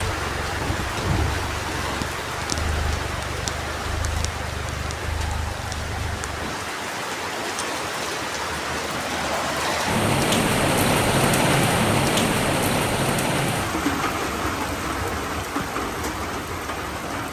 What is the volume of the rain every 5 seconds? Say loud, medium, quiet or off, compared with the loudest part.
medium, medium, loud, medium.